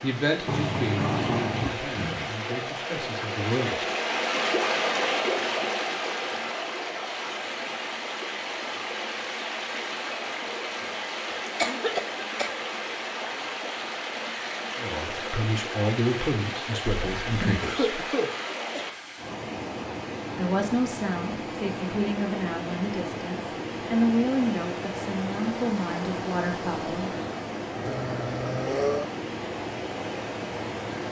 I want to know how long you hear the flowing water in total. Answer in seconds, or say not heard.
31 s.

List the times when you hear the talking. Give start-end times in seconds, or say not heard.
0.0-3.9, 14.8-18.1, 20.4-27.1.